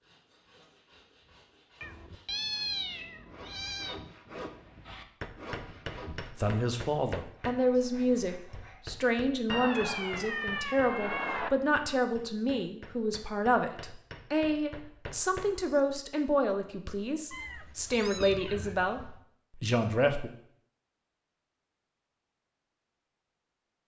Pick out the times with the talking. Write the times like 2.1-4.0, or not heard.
6.2-20.3.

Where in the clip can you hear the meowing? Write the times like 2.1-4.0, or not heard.
1.8-4.0, 9.5-11.5, 17.3-19.1.